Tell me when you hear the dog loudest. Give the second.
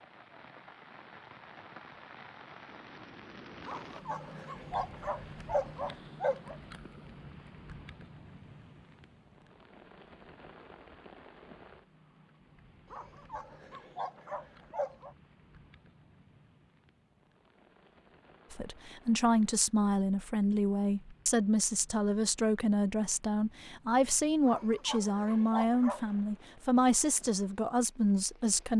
6 s.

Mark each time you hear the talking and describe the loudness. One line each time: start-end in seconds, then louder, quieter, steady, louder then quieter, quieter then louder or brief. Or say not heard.
18.5-28.7 steady.